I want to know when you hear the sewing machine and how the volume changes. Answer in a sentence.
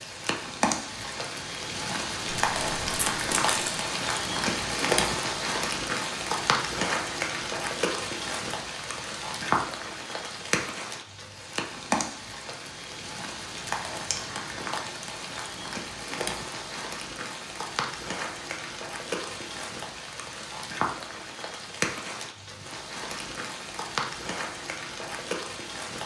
The sewing machine can't be heard in this clip.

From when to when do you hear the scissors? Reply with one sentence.
You can hear the scissors from 2.3 to 3.8 s and from 14.1 to 15.1 s.